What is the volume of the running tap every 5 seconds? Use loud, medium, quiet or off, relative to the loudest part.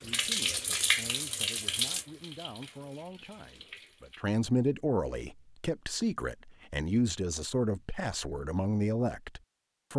loud, off.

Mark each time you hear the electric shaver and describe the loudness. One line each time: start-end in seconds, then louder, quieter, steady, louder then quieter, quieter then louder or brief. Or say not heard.
not heard.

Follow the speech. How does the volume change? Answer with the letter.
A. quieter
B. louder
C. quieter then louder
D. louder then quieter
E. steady
B.